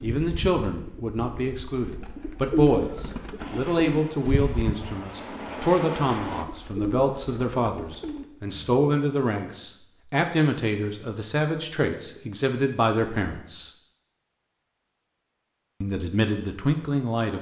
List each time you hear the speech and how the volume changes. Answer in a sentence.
The speech can be heard from 0.0 to 13.7 s, at a steady volume; and briefly from 15.8 to 17.3 s.